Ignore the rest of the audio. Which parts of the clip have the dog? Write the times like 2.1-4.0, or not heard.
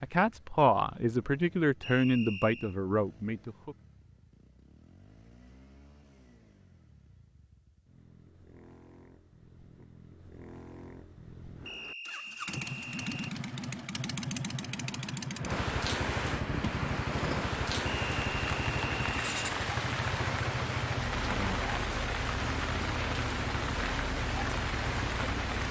not heard.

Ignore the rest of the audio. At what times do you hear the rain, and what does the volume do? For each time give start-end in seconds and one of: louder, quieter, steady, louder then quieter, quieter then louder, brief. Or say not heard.
12.6-25.6 louder.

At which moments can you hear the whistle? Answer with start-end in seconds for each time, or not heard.
1.8-2.8, 11.7-13.3, 17.9-19.4.